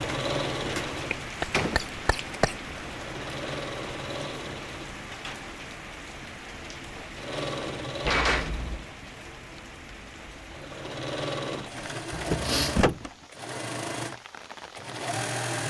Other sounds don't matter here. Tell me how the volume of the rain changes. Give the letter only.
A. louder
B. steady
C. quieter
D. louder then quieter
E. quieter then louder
C.